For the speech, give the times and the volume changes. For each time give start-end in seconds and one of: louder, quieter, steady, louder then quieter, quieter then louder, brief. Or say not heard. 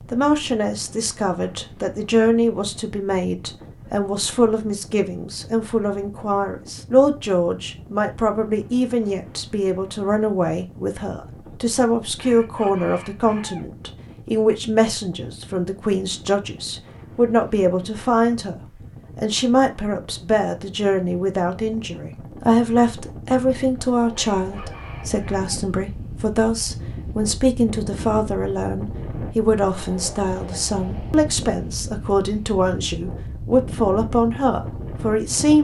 0.1-35.5 steady.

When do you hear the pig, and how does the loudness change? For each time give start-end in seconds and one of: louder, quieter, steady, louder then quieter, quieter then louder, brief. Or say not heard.
not heard.